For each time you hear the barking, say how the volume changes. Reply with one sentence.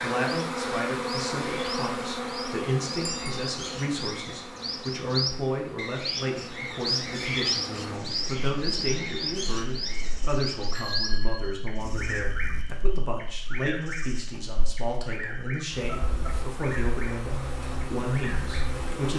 The barking can't be heard in this clip.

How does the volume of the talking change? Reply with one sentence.
The volume of the talking stays about the same.